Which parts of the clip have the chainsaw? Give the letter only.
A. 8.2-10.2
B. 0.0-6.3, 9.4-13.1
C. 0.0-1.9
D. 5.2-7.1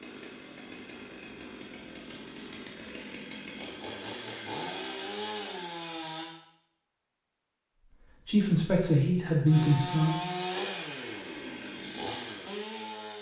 B.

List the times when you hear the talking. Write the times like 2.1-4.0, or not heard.
8.2-10.2.